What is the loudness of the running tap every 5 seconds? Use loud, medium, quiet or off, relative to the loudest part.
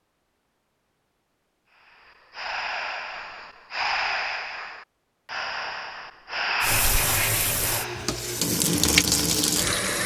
off, loud.